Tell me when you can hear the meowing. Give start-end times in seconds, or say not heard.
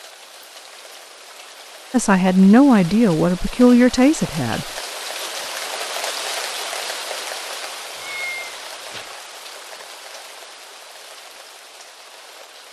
8.0-9.2.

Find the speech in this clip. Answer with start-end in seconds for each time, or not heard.
1.9-4.7.